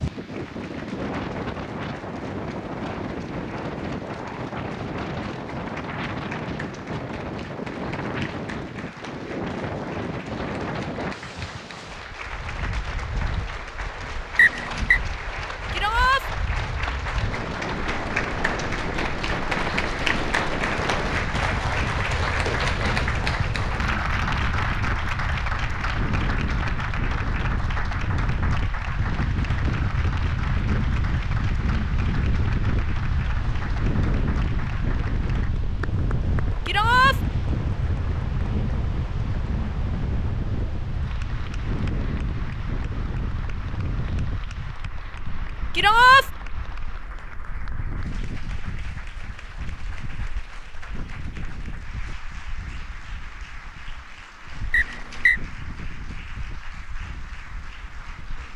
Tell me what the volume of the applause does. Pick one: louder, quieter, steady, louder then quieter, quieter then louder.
louder then quieter.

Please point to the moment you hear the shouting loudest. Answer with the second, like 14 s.
46 s.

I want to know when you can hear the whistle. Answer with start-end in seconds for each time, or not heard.
14.3-15.0, 54.7-55.4.